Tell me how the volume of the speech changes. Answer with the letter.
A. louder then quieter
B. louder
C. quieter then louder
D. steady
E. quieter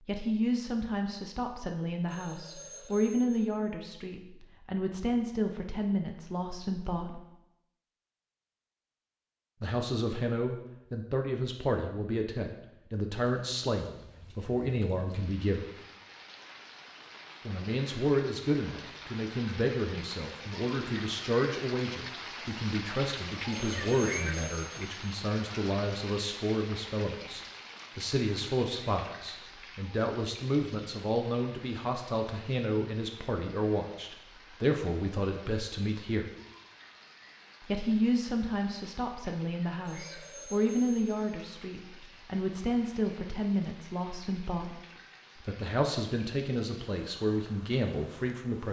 D.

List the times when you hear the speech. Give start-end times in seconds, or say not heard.
0.1-7.2, 9.6-15.7, 17.4-36.4, 37.6-44.8, 45.4-48.6.